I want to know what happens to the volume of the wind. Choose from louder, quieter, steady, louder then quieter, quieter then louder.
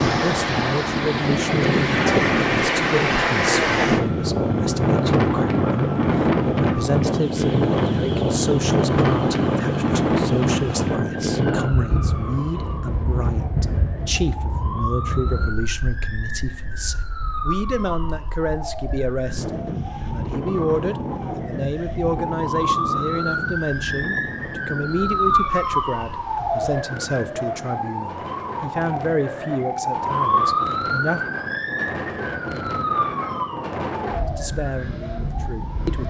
quieter.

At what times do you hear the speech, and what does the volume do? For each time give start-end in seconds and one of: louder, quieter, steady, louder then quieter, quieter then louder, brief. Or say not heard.
0.0-31.2 steady
34.4-36.0 brief.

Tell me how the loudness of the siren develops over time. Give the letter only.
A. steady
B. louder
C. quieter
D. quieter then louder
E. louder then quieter
B.